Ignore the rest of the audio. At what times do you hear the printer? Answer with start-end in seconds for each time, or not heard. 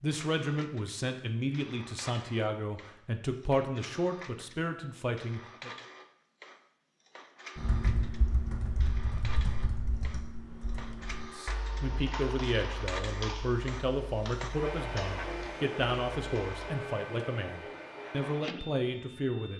0.0-19.5.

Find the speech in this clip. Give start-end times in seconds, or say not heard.
0.0-5.7, 11.3-19.5.